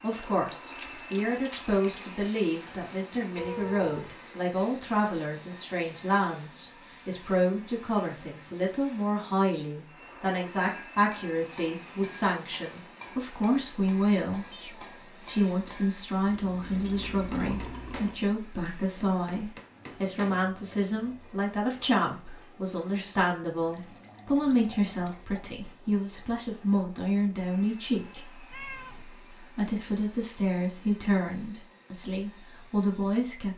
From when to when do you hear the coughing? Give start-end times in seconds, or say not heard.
not heard.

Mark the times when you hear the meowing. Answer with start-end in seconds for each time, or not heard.
3.4-4.2, 14.5-15.6, 28.5-29.1.